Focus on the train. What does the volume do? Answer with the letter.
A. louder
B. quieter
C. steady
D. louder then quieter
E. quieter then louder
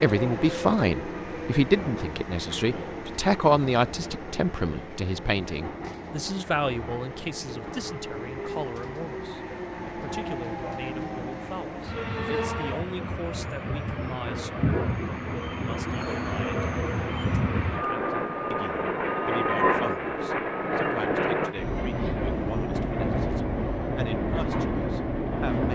A.